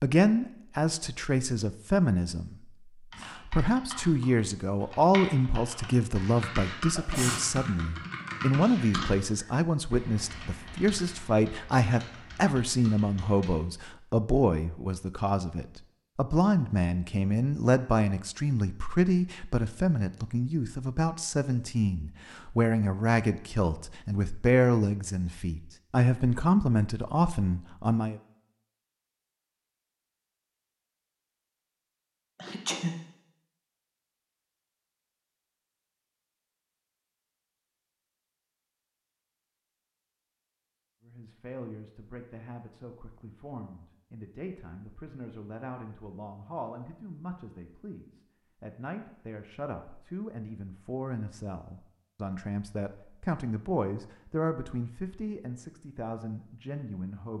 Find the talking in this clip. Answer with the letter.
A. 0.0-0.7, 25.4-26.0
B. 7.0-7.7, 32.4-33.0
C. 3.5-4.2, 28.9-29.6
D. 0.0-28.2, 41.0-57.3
D.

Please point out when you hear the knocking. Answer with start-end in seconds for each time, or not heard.
not heard.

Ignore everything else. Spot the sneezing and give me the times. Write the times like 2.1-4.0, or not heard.
7.0-7.7, 32.4-33.0.